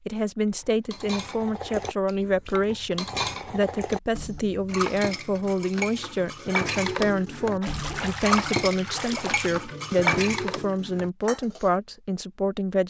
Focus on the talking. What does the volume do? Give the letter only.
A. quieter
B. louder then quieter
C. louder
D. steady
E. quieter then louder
D.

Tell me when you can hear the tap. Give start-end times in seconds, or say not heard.
7.6-9.5.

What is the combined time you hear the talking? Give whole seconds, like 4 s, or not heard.
13 s.